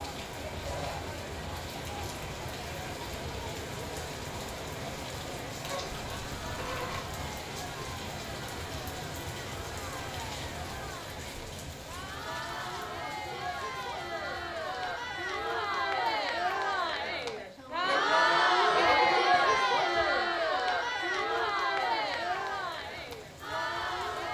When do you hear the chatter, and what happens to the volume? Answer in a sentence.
You can hear the chatter from 0.2 to 24.2 s, getting louder.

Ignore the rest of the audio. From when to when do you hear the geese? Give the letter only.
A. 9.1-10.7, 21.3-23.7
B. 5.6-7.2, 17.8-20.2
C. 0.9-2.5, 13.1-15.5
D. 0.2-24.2
B.